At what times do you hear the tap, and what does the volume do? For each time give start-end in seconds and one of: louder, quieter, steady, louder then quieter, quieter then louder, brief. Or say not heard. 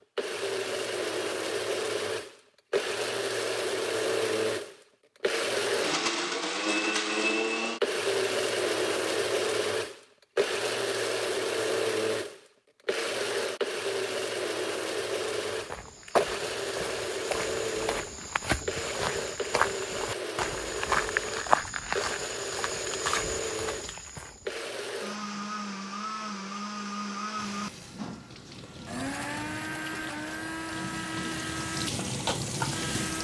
27.4-33.1 louder.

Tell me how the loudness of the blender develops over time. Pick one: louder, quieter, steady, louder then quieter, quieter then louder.
quieter.